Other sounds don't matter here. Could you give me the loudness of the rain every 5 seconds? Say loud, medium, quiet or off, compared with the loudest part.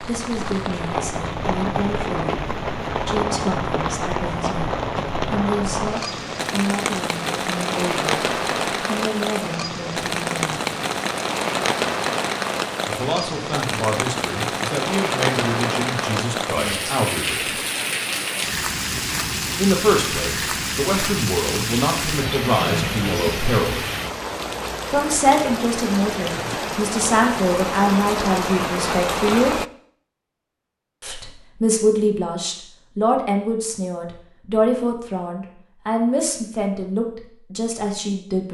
loud, loud, loud, loud, loud, loud, off, off.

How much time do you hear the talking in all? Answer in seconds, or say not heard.
32 s.